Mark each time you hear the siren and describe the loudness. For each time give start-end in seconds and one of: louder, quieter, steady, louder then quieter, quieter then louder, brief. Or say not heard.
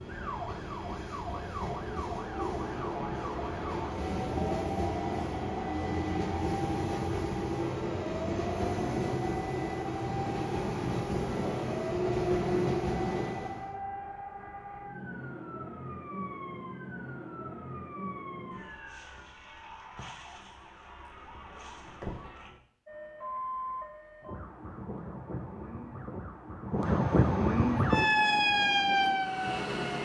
0.0-29.9 louder.